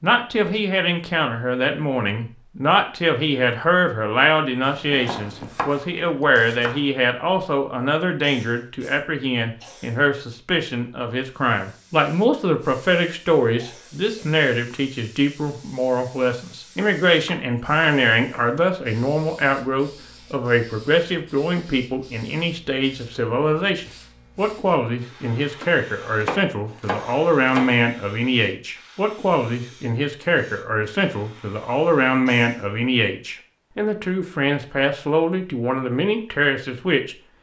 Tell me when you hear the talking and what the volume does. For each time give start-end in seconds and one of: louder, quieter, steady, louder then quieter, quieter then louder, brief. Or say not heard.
0.0-37.1 steady.